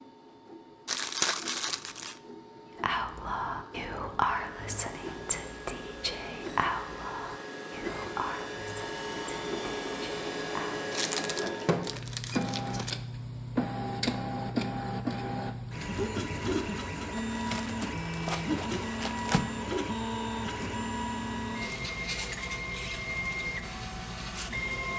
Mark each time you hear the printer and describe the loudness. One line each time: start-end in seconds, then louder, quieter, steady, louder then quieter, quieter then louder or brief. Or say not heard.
0.0-24.9 louder.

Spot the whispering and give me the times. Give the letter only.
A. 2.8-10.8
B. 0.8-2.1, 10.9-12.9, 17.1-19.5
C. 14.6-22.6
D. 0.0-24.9
A.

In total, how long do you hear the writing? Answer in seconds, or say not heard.
not heard.